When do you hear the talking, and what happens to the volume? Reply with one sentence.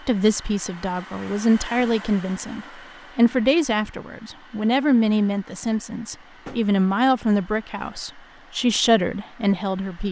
You can hear the talking from 0.1 to 10.0 s, at a steady volume.